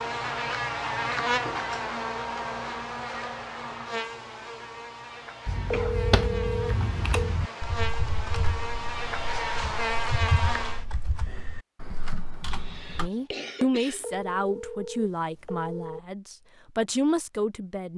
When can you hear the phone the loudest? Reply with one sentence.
The volume of the phone peaks at 6 seconds.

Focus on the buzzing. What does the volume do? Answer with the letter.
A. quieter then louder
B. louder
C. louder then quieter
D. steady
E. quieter
A.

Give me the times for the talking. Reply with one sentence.
The talking can be heard from 12.9 to 17.9 s.